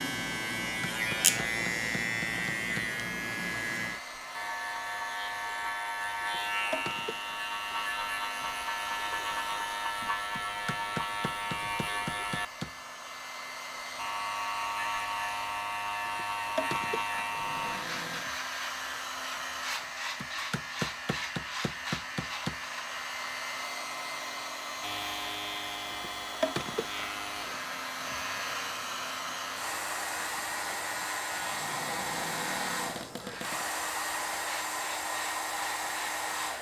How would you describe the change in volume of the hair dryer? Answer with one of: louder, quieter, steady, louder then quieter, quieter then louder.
louder.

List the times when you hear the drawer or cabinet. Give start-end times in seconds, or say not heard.
1.2-2.1, 17.4-18.3, 31.6-33.7.